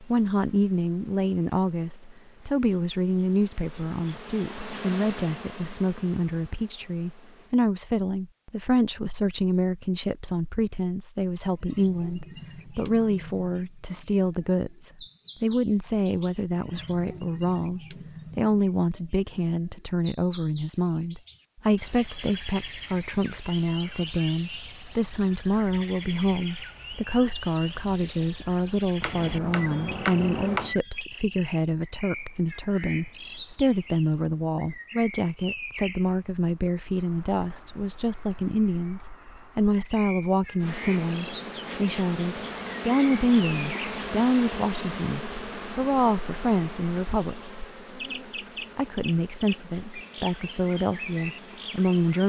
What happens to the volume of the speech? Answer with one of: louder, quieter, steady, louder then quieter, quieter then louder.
steady.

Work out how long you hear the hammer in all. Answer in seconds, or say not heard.
2 s.